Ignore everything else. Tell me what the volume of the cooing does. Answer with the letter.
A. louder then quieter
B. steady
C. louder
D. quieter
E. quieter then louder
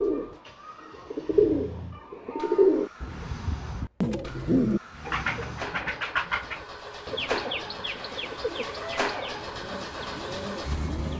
D.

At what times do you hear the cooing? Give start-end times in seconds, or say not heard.
0.0-11.1.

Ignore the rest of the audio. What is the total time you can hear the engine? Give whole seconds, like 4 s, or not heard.
11 s.